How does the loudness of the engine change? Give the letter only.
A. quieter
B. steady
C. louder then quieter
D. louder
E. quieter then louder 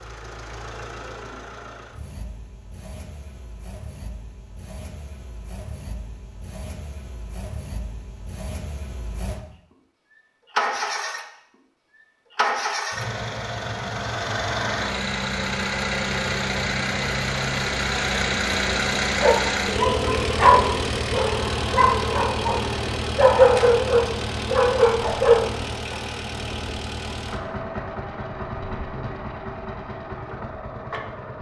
C.